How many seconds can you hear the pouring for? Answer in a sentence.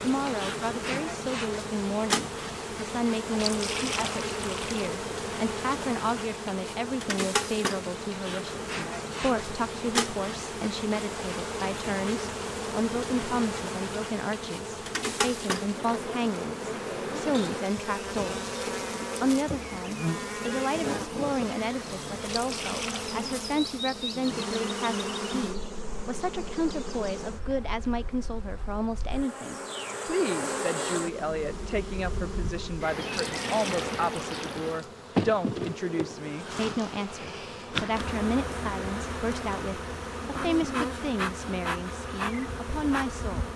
The pouring can be heard for 4 seconds in total.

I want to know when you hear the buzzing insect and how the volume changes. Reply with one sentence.
The buzzing insect can be heard from 0.0 to 43.5 s, at a steady volume.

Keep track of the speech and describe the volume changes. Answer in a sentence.
The loudness of the speech stays about the same.